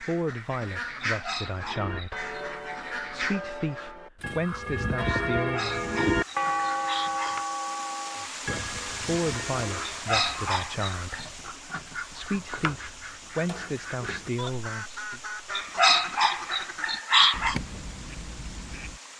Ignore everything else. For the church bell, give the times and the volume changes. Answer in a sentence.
The church bell can be heard from 1.5 to 10.0 s, getting louder then quieter.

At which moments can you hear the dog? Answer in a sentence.
The dog can be heard from 1.1 to 2.3 s, from 5.4 to 7.5 s, from 9.9 to 11.2 s and from 15.5 to 17.6 s.